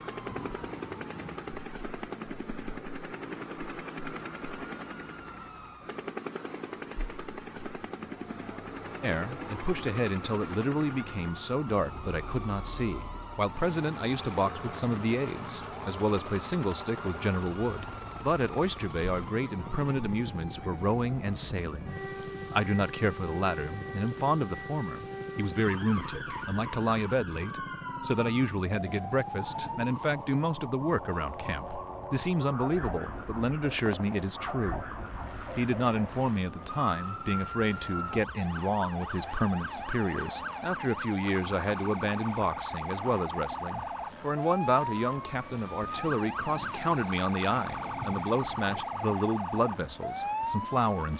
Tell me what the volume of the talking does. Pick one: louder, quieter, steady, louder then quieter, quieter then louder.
steady.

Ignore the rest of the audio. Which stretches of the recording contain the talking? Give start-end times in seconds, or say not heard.
9.0-34.9, 35.5-51.1.